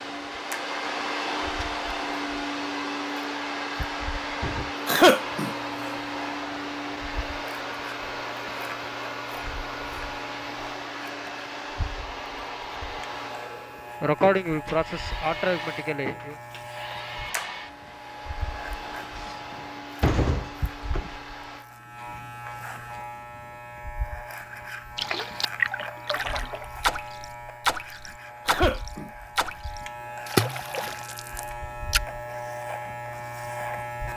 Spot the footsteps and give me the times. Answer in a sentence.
You can't hear the footsteps here.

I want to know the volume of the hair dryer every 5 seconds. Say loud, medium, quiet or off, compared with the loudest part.
loud, loud, medium, medium, medium, off, off.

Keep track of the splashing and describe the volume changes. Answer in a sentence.
The volume of the splashing goes down, then up.